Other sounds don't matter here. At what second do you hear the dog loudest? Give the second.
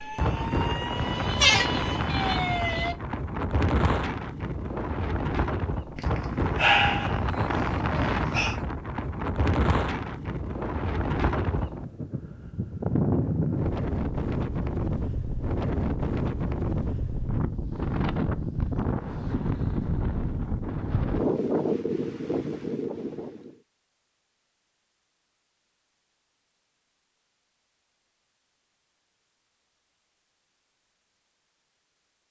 7 s.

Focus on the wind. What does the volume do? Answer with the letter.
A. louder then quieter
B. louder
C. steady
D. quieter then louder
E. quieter
C.